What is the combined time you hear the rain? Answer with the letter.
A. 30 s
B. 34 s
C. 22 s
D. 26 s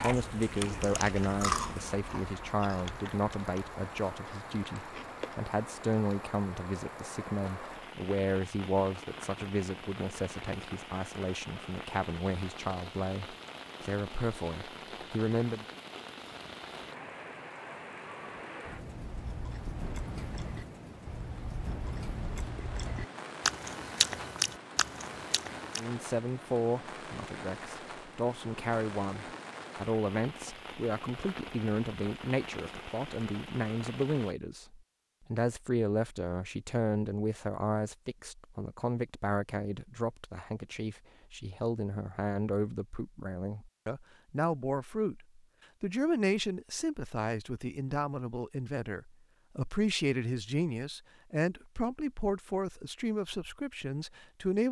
B.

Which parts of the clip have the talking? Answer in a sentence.
The talking can be heard from 0.0 to 15.7 s and from 25.8 to 54.6 s.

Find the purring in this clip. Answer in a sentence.
You can't hear the purring here.